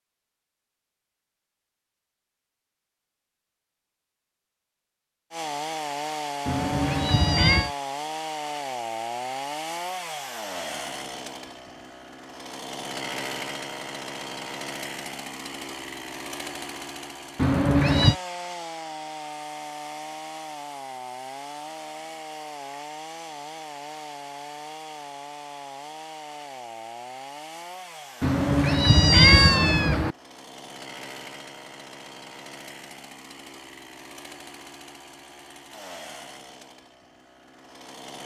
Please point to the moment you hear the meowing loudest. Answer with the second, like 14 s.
29 s.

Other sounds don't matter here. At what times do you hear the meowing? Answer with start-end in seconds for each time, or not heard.
6.5-7.7, 17.4-18.1, 28.2-30.1.